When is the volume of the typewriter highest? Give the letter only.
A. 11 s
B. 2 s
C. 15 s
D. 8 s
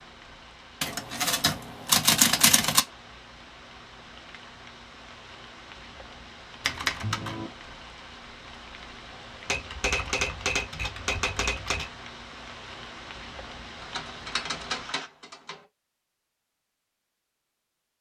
B.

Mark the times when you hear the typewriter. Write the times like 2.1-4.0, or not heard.
0.8-2.8, 6.6-7.5, 9.4-11.9, 13.8-15.6.